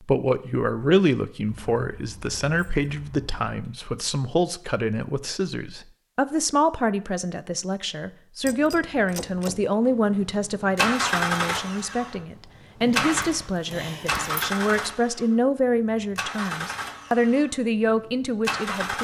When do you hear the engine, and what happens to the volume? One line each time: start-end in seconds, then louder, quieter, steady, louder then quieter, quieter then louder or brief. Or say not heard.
10.2-18.9 quieter.